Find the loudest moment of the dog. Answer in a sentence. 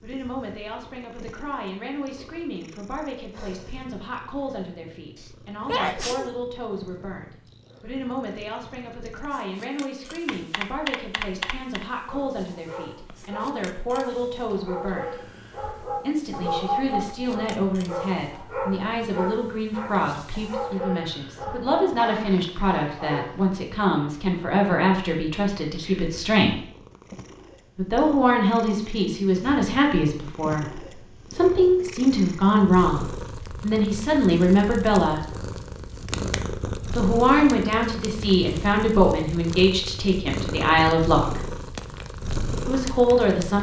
The volume of the dog peaks at 17 seconds.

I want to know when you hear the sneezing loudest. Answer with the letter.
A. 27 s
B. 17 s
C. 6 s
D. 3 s
C.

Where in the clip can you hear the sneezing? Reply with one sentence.
You can hear the sneezing from 5.2 to 6.3 s and from 25.7 to 26.1 s.